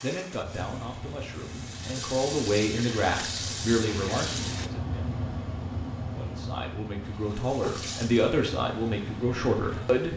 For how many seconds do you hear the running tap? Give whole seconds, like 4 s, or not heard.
8 s.